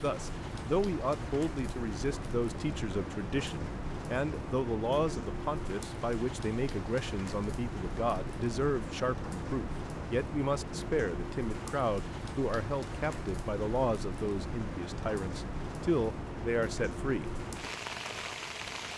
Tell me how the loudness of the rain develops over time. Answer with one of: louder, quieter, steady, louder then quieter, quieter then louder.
steady.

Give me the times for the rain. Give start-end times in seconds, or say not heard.
0.0-18.9.